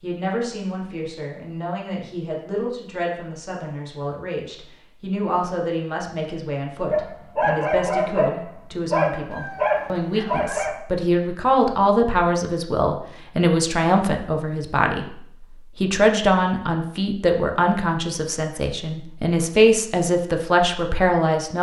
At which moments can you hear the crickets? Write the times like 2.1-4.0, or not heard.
not heard.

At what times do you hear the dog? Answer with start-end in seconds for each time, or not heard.
6.9-10.8.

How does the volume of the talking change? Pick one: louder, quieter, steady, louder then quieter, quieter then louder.
louder.